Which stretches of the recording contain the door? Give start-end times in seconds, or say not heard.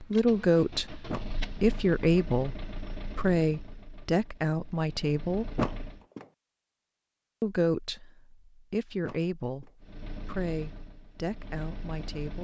1.1-1.8, 5.5-6.2, 9.0-9.7.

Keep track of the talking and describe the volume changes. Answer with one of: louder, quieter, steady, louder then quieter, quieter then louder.
quieter.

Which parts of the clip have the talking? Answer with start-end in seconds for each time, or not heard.
0.0-5.6, 7.4-12.3.